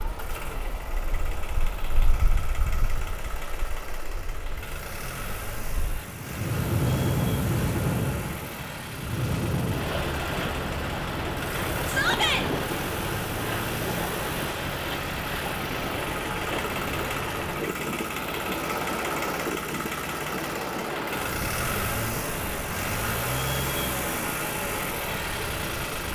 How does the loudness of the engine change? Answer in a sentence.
The loudness of the engine goes up.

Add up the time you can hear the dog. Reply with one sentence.
The dog can't be heard in this clip.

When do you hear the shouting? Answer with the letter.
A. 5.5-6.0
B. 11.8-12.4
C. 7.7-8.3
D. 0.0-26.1
B.